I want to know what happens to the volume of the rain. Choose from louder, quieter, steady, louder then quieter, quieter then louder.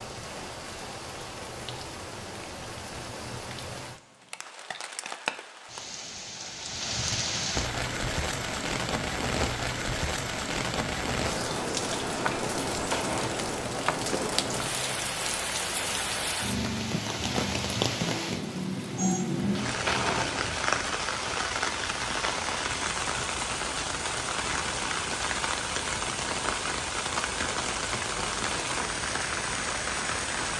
louder.